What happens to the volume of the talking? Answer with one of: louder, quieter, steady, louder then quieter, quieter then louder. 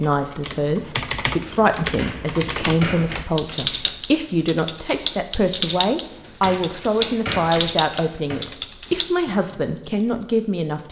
steady.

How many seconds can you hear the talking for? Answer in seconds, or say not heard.
11 s.